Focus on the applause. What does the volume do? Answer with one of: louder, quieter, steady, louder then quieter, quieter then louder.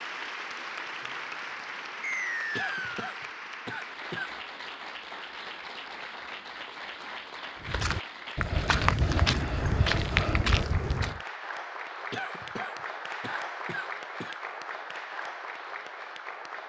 steady.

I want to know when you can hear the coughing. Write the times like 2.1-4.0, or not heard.
2.5-4.3, 12.1-14.4.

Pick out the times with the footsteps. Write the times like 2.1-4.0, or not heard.
7.6-11.2.